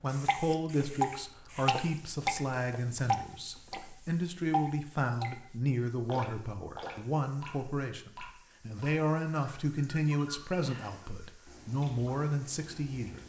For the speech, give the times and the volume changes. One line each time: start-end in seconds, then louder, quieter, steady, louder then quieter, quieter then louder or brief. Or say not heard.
0.0-13.2 steady.